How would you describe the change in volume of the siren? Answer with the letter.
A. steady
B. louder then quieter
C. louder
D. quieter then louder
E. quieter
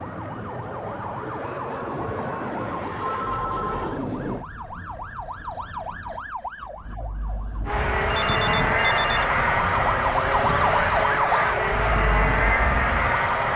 C.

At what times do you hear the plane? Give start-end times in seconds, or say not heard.
0.0-4.5, 7.7-13.5.